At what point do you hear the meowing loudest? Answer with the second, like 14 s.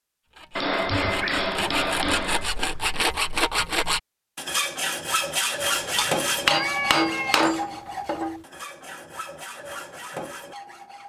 7 s.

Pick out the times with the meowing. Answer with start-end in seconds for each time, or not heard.
0.8-1.4, 6.0-7.5.